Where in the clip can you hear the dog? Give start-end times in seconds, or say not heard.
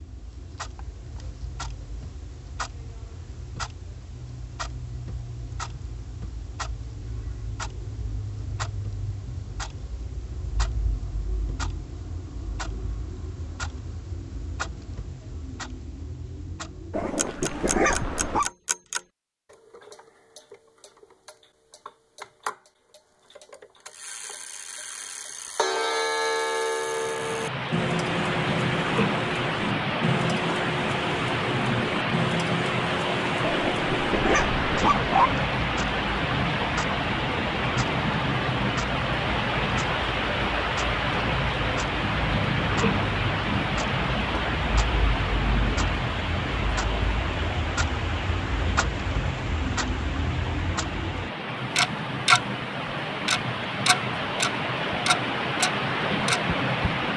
16.9-18.5, 33.4-35.4.